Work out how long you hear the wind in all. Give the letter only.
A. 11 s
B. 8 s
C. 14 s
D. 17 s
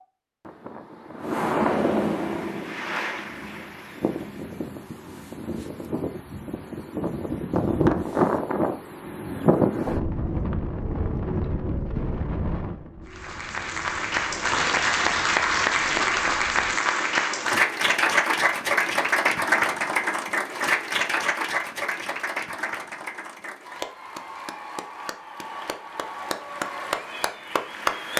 D.